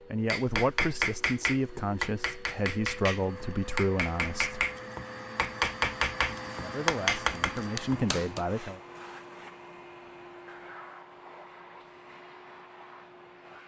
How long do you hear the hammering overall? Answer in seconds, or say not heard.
8 s.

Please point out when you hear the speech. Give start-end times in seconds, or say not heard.
0.1-4.7, 6.5-8.8.